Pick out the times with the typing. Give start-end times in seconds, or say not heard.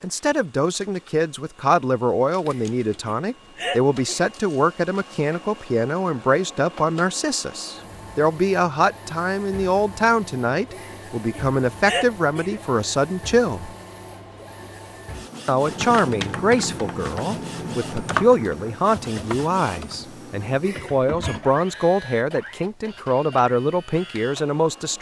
15.6-21.6.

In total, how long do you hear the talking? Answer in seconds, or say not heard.
23 s.